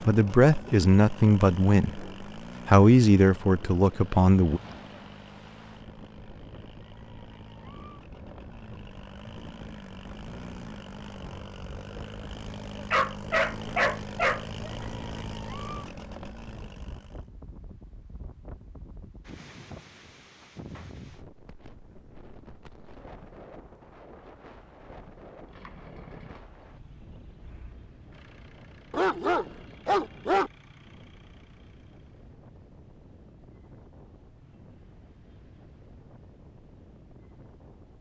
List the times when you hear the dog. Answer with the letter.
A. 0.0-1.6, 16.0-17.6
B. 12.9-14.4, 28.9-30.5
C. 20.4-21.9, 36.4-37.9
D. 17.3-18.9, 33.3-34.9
B.